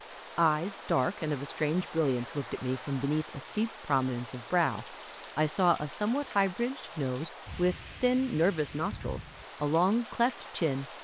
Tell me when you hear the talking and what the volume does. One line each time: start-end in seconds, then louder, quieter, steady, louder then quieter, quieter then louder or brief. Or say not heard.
0.3-10.8 steady.